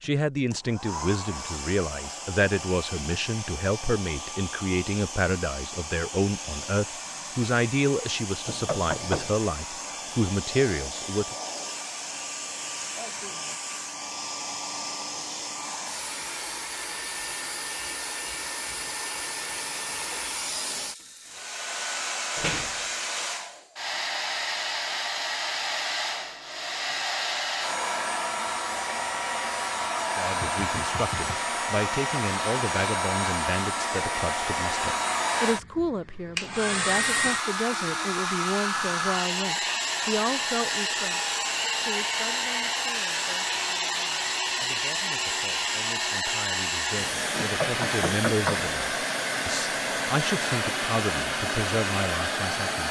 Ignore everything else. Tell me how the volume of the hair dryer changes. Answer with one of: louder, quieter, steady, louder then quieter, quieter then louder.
louder.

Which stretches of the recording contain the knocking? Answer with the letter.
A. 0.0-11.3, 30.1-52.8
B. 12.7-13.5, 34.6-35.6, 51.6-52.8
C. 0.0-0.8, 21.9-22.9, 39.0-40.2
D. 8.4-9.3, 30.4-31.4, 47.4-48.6
D.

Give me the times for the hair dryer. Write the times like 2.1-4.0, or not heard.
0.0-52.8.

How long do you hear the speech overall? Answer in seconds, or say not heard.
34 s.